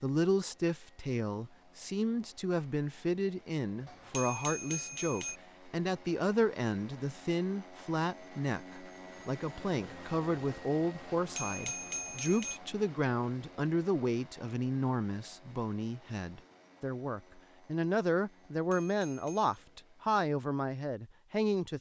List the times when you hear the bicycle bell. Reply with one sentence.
You can hear the bicycle bell from 3.9 to 5.4 s, from 11.2 to 12.6 s and from 18.4 to 19.6 s.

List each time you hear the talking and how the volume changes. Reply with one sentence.
The talking can be heard from 0.0 to 21.7 s, at a steady volume.